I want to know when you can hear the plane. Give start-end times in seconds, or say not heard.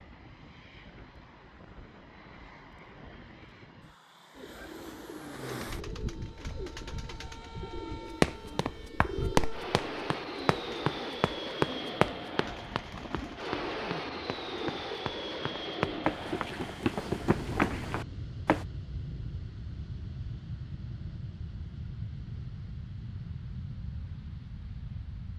0.0-25.3.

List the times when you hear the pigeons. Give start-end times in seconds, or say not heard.
4.3-16.1.